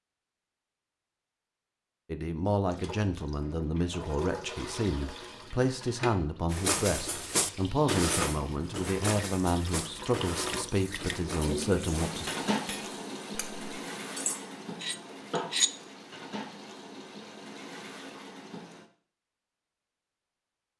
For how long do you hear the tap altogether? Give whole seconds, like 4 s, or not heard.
16 s.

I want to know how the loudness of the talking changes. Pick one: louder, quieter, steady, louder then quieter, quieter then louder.
steady.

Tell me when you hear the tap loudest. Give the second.
12 s.